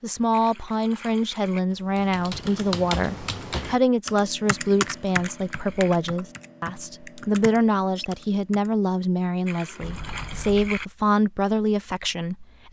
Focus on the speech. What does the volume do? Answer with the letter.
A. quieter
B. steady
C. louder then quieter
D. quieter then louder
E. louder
B.